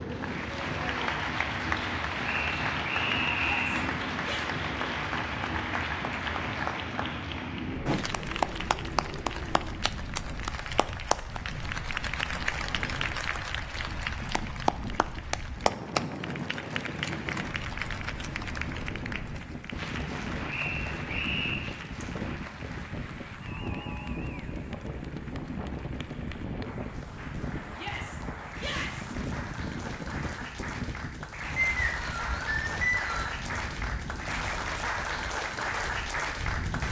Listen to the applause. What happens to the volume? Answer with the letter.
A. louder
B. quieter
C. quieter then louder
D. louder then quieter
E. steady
C.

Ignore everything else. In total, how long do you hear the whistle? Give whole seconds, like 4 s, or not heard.
5 s.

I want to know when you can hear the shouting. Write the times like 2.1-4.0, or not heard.
3.4-4.5, 27.8-29.1.